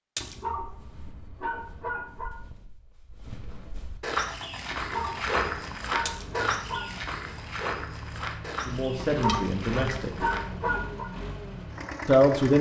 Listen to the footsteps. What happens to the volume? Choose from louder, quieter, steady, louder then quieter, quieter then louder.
louder then quieter.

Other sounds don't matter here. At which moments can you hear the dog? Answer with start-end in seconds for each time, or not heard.
0.2-2.3, 4.7-6.9, 8.9-11.1.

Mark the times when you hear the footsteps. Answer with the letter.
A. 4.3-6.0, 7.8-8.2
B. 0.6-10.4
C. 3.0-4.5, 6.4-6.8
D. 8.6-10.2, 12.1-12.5
B.